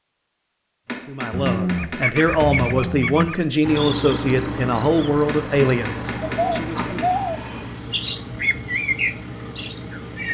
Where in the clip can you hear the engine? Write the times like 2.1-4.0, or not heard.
3.6-10.2.